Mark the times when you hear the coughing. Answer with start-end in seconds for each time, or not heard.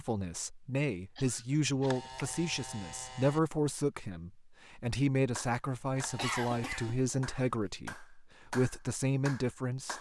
1.1-2.0, 6.2-7.3.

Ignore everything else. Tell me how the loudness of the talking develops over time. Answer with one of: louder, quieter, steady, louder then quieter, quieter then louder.
steady.